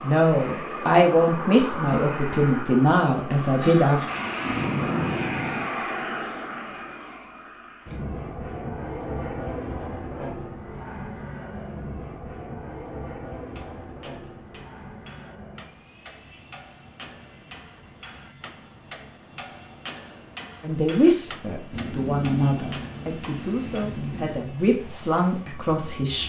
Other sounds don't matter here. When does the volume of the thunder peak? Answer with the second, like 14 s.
5 s.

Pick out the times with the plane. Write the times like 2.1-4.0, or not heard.
0.0-26.2.